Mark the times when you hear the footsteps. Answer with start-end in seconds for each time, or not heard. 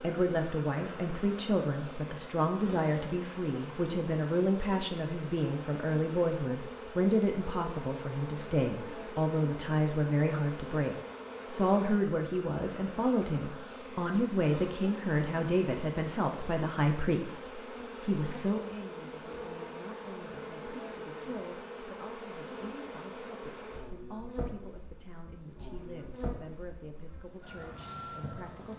not heard.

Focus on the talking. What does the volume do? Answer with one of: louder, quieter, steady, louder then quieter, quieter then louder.
quieter.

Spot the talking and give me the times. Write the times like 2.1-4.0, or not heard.
0.0-28.7.